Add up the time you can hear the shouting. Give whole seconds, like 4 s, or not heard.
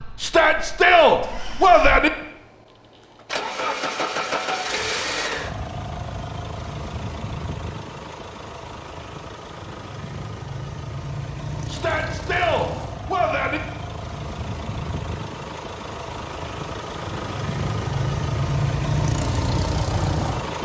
4 s.